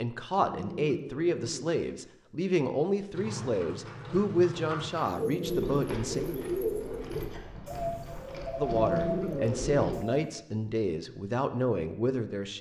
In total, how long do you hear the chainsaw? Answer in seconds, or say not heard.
not heard.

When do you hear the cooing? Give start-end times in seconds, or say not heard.
5.0-10.3.